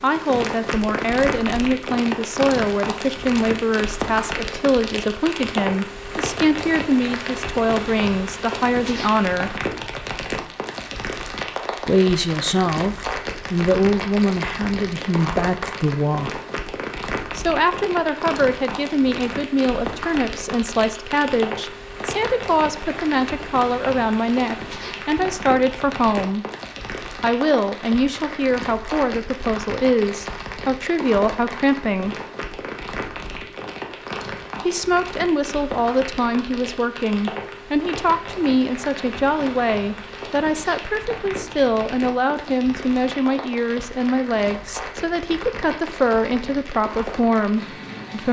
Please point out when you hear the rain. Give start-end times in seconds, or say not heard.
0.0-48.2.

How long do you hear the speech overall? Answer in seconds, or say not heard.
42 s.